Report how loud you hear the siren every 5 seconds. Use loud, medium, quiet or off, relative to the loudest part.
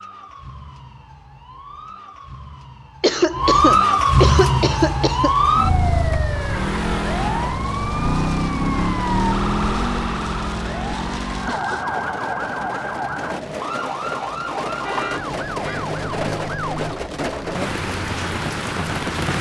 loud, loud, medium, medium.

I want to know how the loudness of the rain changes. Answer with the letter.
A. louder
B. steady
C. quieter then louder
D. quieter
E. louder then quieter
A.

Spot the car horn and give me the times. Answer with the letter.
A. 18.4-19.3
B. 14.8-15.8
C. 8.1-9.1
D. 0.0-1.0
B.